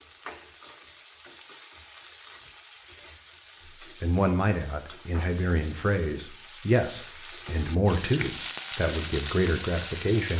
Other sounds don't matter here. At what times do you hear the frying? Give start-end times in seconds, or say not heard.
0.0-10.3.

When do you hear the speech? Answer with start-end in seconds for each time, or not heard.
3.8-10.3.